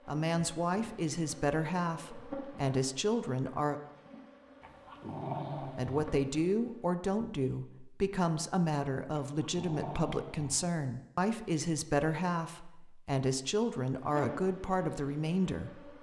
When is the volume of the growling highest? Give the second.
5 s.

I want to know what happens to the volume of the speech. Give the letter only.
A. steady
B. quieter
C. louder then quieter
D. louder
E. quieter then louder
A.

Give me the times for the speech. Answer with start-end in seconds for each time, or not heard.
0.1-3.8, 5.6-15.9.